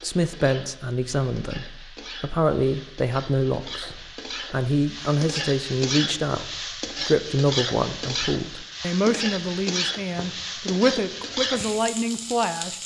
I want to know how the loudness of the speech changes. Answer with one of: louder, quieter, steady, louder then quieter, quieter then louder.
steady.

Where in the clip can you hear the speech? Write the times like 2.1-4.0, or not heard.
0.0-12.8.